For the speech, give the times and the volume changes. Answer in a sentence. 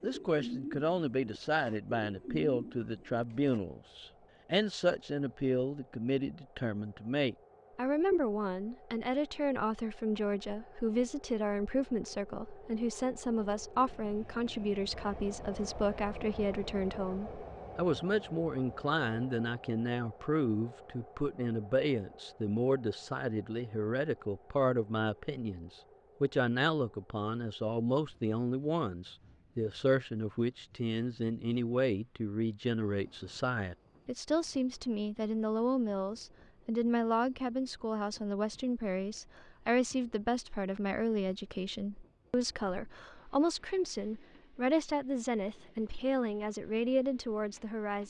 You can hear the speech from 0.0 to 48.0 s, at a steady volume.